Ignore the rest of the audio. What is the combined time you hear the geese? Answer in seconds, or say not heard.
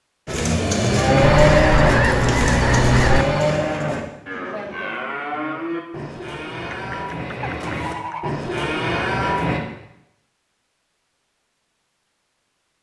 4 s.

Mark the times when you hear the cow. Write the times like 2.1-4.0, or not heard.
0.2-9.6.